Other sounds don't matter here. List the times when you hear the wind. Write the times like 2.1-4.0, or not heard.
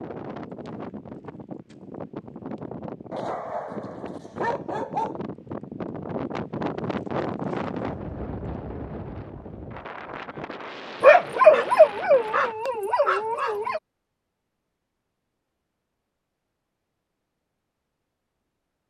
0.0-12.6.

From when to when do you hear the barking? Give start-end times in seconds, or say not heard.
3.1-5.2, 11.0-13.8.